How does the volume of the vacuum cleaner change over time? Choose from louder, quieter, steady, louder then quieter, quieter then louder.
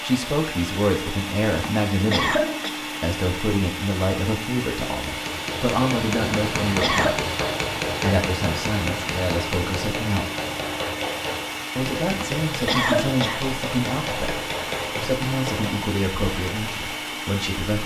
steady.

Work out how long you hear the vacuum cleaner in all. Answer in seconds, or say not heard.
18 s.